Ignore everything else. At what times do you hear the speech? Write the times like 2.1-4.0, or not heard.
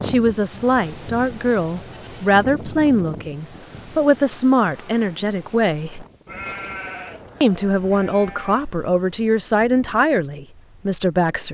0.0-6.0, 7.4-11.4.